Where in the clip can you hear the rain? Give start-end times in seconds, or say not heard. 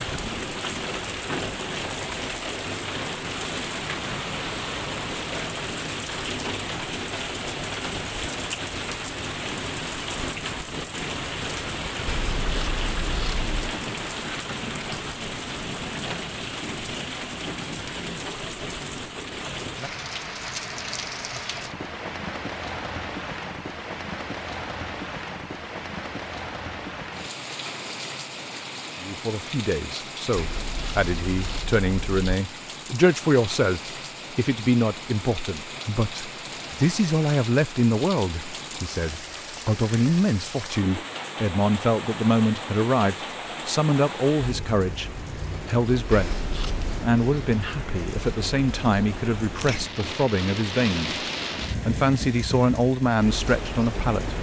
0.0-54.3.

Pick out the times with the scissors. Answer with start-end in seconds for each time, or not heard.
12.1-13.8, 30.4-32.2, 46.1-47.1.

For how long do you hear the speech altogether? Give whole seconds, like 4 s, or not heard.
24 s.